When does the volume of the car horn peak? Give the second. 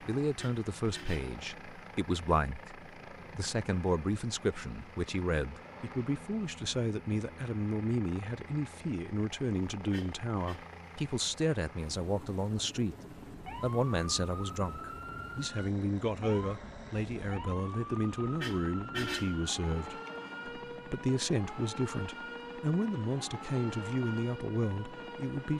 19 s.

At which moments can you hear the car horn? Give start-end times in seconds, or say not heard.
0.3-1.4, 9.9-10.7, 18.4-19.4.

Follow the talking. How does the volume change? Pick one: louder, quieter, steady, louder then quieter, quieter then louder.
steady.